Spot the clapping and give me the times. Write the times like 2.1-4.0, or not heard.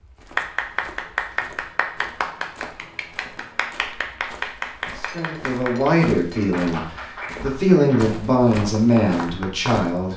0.3-9.8.